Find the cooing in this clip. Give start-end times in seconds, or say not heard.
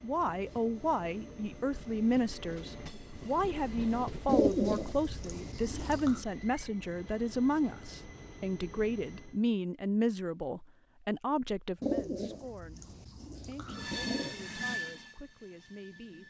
4.2-6.2, 11.8-14.3.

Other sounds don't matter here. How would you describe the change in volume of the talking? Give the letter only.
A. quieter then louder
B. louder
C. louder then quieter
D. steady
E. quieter
E.